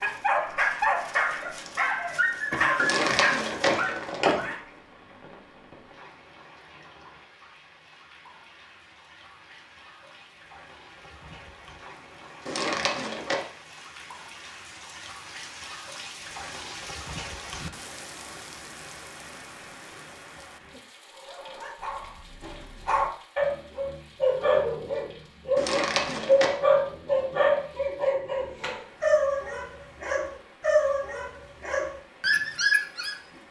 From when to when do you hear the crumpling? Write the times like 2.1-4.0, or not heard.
2.8-4.3, 12.4-13.4, 25.6-26.6.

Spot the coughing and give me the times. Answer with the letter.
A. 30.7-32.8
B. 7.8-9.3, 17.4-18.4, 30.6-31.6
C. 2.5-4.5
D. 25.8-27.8
C.